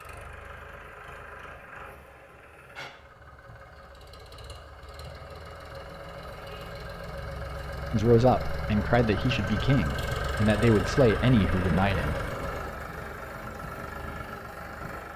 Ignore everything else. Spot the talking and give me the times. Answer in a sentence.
The talking can be heard from 7.9 to 12.2 s.